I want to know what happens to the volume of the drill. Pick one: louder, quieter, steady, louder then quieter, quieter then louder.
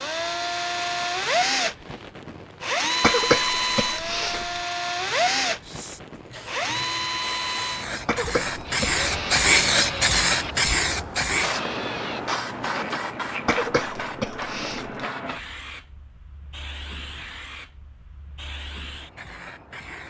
quieter.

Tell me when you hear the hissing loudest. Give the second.
10 s.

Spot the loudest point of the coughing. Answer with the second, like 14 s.
3 s.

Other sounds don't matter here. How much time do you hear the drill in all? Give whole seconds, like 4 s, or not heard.
12 s.